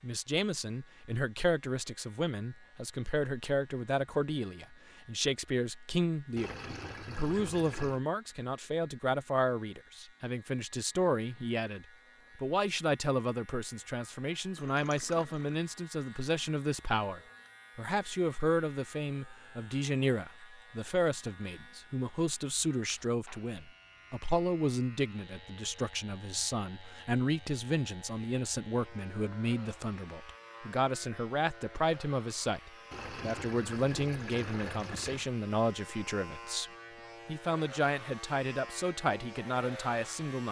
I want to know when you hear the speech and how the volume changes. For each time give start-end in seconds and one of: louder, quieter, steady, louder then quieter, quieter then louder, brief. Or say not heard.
0.0-40.4 steady.